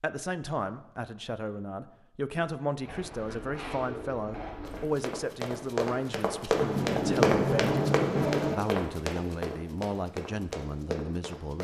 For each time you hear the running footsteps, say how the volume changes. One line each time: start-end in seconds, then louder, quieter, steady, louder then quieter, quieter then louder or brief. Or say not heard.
4.6-11.5 louder then quieter.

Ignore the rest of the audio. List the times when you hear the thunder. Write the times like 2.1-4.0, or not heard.
6.5-8.6.